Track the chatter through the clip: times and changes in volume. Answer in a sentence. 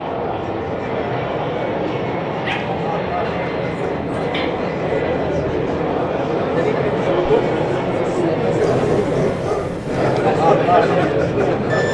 The chatter can be heard from 0.0 to 11.8 s, getting louder.